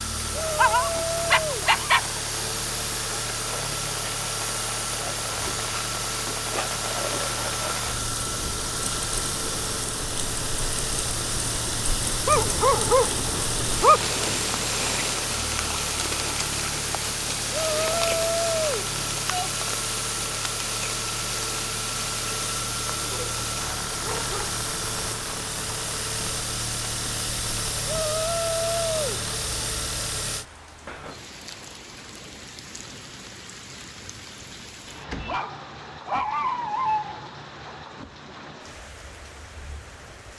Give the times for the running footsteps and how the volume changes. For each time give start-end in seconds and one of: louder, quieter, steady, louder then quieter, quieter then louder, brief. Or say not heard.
not heard.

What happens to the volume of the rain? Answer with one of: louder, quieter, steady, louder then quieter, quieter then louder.
quieter.